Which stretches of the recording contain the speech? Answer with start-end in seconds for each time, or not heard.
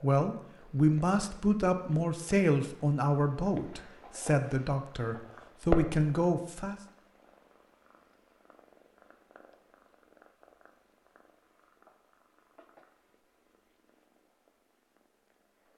0.0-6.8.